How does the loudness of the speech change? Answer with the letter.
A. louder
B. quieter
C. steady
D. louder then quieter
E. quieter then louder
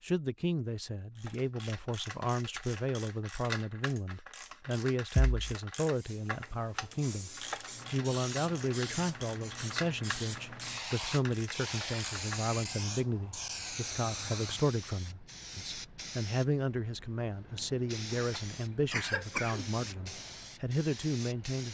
C.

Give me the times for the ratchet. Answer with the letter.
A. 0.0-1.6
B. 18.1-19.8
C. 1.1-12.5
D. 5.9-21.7
C.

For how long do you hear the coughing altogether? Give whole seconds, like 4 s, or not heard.
2 s.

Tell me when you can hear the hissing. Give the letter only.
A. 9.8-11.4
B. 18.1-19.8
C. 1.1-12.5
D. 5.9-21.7
D.